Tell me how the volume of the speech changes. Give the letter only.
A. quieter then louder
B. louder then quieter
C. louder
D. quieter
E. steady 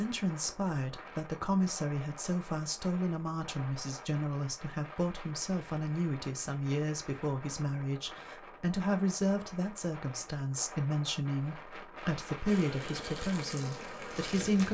E.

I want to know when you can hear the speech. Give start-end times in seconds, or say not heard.
0.0-14.6.